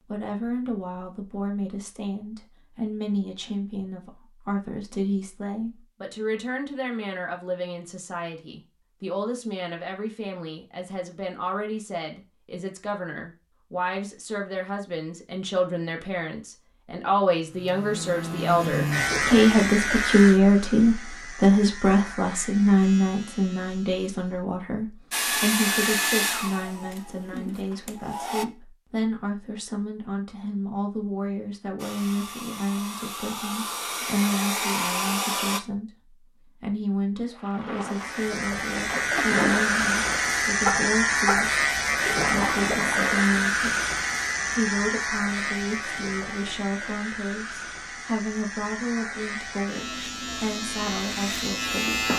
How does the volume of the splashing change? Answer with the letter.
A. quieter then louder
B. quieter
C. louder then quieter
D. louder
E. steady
D.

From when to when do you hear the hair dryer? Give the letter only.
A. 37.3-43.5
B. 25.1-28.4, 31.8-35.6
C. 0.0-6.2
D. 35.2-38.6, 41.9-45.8
B.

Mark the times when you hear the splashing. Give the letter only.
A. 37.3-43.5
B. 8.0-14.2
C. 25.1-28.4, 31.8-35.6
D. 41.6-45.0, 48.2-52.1
A.